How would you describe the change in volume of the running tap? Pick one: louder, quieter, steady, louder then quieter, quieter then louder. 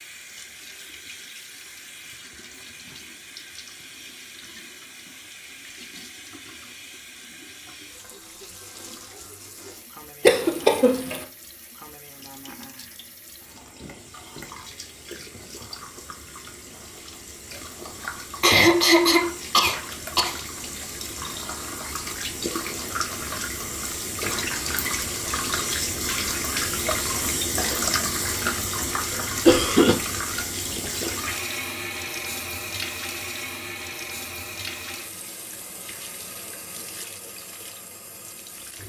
louder then quieter.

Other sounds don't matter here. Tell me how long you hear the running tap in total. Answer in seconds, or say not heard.
39 s.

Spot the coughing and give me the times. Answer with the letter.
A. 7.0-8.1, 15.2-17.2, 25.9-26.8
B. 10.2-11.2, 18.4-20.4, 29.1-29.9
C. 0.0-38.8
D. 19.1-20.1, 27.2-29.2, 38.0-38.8
B.